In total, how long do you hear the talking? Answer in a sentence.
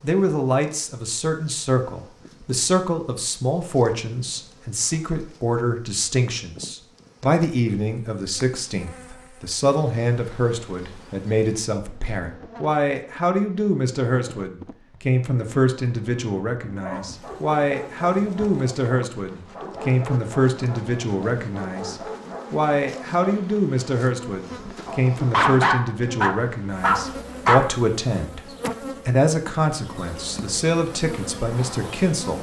You can hear the talking for 32 seconds altogether.